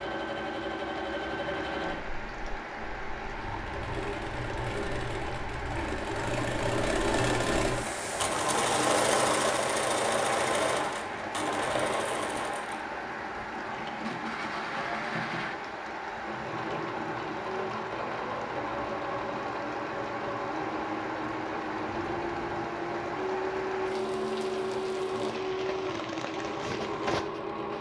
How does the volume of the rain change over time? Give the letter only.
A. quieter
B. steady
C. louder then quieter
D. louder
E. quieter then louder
B.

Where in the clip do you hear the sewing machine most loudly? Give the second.
9 s.